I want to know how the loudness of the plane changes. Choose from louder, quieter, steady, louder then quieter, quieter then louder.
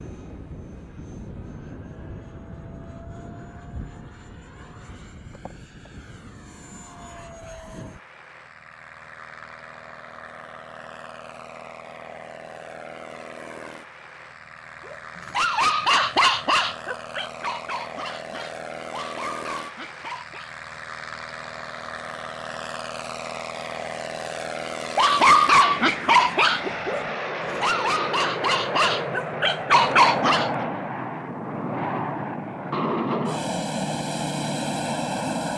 louder.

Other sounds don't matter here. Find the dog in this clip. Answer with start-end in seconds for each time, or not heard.
14.8-20.6, 24.9-30.5.